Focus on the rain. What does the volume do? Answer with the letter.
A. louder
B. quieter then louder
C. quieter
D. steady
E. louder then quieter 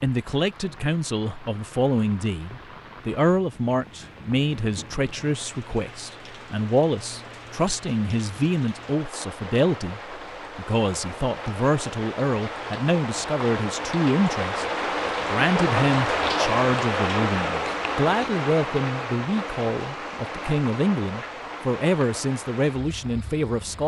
E.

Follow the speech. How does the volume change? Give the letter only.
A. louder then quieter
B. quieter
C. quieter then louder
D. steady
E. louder
D.